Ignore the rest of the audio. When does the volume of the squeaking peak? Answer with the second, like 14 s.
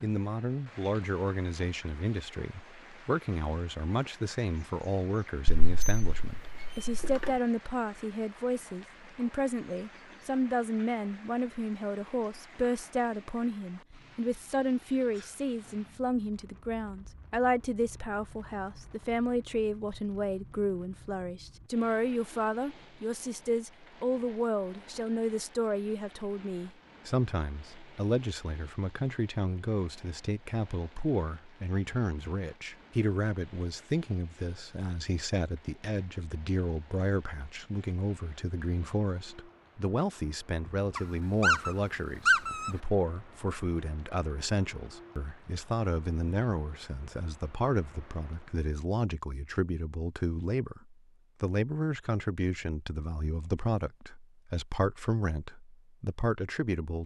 42 s.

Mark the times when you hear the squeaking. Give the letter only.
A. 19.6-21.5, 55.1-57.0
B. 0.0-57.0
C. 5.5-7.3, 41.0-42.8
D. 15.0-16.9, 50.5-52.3
C.